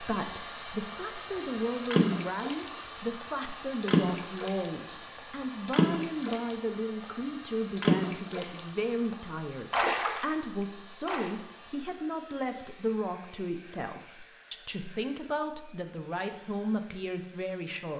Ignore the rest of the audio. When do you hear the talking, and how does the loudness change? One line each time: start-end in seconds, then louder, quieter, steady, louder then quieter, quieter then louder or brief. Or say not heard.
0.0-17.9 steady.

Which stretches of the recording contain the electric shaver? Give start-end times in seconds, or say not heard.
not heard.